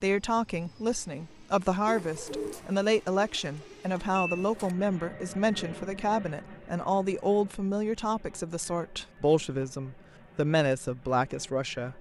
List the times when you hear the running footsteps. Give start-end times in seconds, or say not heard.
not heard.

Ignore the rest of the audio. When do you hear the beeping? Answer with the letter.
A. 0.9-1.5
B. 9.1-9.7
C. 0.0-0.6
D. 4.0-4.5
D.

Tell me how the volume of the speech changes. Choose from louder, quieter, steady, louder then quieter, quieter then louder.
steady.